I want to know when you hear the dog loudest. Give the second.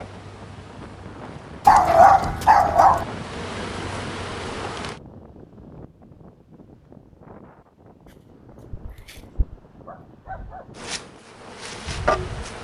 2 s.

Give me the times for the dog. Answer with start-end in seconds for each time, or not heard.
1.6-3.0, 8.7-10.7.